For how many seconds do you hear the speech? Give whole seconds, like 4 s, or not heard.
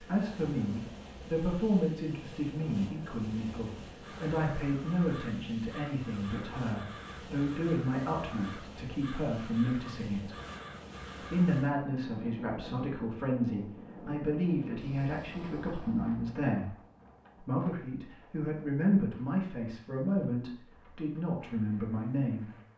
21 s.